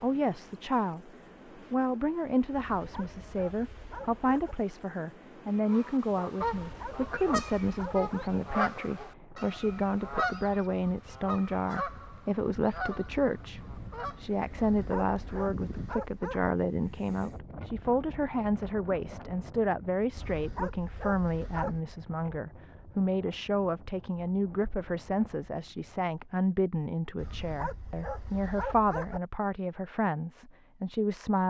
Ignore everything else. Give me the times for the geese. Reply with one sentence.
You can hear the geese from 5.7 to 14.2 s.